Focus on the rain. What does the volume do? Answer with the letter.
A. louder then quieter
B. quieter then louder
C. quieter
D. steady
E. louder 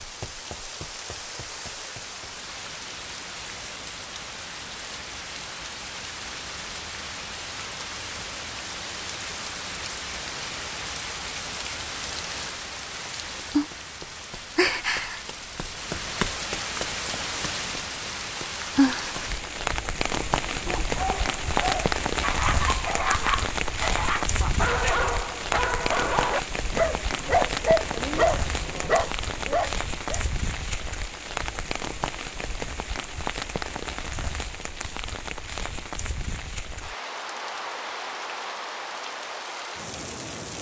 A.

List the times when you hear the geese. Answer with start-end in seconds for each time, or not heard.
not heard.